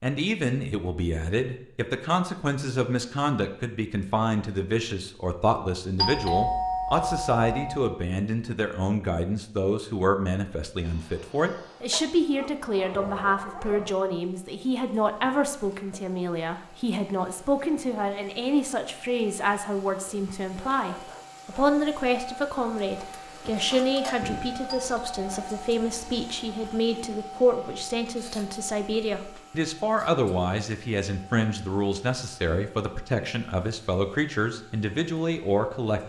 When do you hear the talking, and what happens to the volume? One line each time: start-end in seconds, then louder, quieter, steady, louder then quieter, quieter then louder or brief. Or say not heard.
0.0-36.0 steady.